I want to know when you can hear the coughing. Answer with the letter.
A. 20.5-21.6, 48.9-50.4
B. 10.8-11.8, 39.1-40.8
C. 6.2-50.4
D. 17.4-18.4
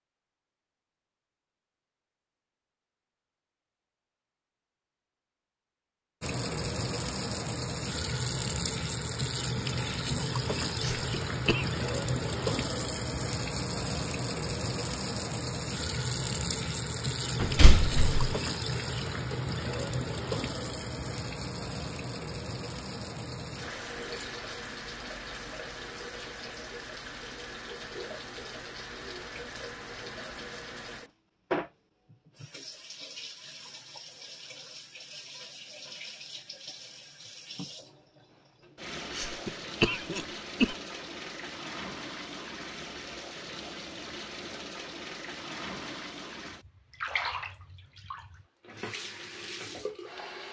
B.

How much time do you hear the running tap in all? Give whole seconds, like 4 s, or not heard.
44 s.